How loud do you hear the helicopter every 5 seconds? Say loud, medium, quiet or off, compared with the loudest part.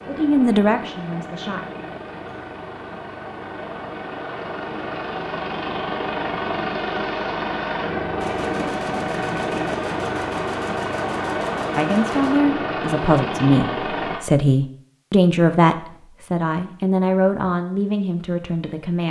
medium, loud, loud, off.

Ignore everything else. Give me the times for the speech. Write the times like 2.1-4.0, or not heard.
0.1-1.6, 11.8-19.0.